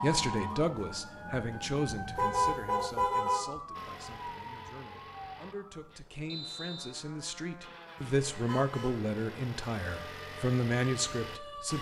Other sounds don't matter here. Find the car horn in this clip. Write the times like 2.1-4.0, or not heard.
2.1-3.5, 8.0-9.0.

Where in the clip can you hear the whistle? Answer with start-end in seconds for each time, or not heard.
6.2-7.0.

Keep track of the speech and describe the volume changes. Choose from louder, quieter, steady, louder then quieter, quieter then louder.
quieter then louder.